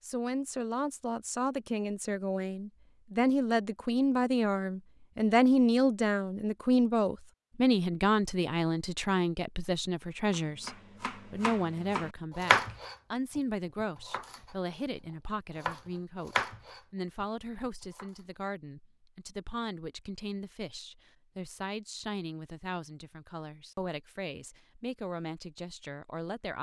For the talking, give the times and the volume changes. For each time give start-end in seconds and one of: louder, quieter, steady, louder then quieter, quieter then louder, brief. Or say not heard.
0.0-26.5 quieter.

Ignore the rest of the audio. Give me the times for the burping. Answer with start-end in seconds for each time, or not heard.
not heard.